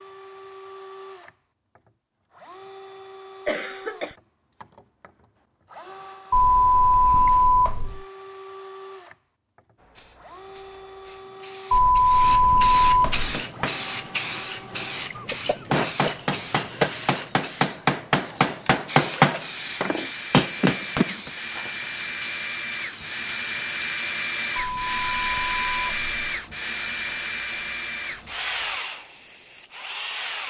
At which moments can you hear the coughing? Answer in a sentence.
The coughing can be heard from 3.5 to 4.2 s, from 15.2 to 16.9 s and from 20.6 to 21.2 s.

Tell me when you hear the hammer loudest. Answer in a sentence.
The loudest moment of the hammer is at 19 seconds.